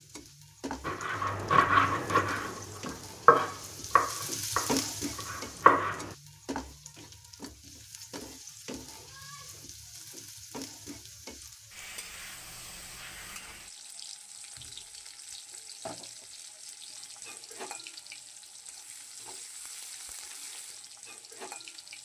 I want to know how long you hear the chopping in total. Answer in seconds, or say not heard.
5 s.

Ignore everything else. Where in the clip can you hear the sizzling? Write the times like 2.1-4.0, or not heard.
0.0-22.0.